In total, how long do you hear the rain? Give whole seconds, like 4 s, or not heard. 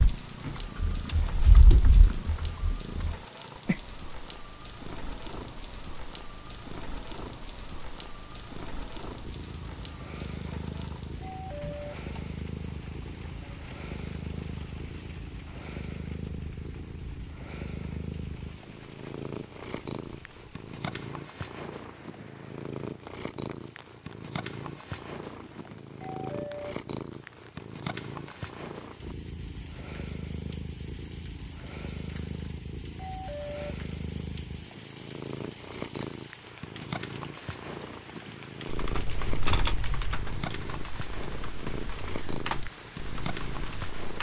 44 s.